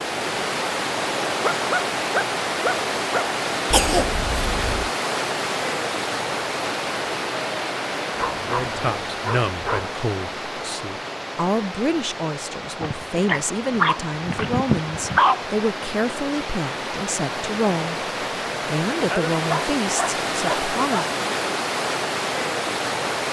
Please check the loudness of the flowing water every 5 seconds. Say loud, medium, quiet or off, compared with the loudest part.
loud, loud, medium, loud, loud.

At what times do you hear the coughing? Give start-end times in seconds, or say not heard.
3.7-4.9.